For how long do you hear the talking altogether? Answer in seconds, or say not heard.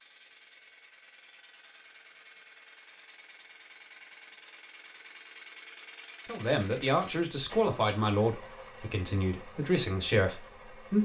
5 s.